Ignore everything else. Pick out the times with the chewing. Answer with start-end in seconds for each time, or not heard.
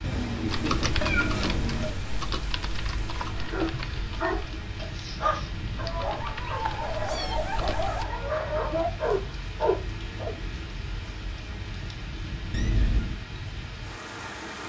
not heard.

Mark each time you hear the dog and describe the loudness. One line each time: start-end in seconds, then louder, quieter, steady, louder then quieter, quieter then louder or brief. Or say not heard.
3.4-10.3 louder.